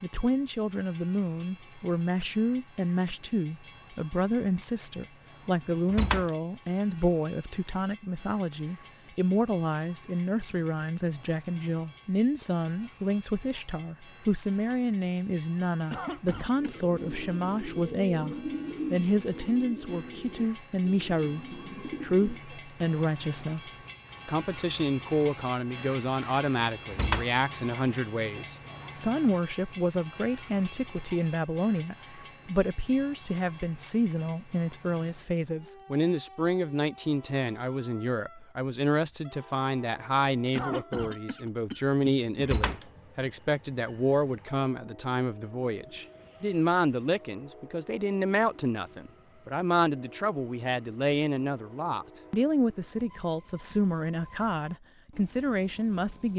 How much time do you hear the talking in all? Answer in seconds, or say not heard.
56 s.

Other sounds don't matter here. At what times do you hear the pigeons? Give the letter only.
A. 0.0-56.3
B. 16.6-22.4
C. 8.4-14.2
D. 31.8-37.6
B.